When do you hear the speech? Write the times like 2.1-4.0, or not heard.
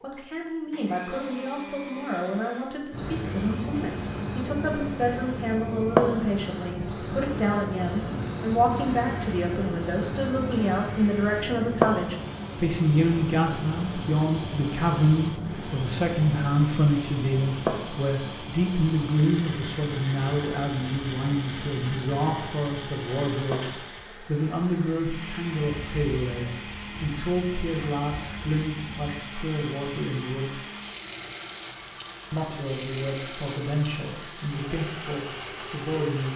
0.0-30.6, 32.3-36.3.